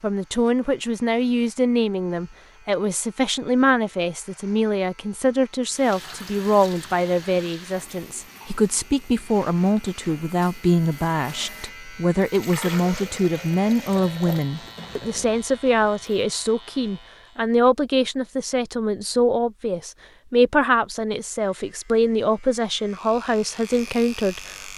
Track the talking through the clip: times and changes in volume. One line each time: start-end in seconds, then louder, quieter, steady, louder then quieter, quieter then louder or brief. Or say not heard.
0.0-24.7 steady.